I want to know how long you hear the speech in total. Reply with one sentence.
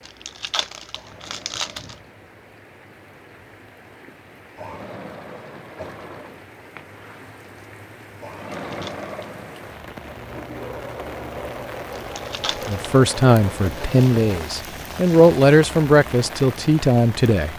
The speech can be heard for 5 seconds in total.